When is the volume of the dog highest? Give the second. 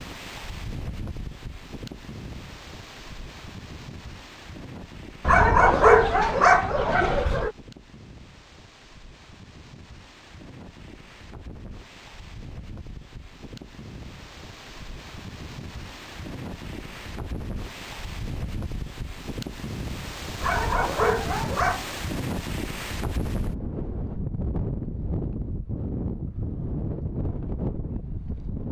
6 s.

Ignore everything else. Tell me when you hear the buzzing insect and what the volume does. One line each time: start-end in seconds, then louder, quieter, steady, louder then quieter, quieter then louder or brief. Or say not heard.
not heard.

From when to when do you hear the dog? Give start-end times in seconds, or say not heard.
5.2-7.5, 20.4-21.9.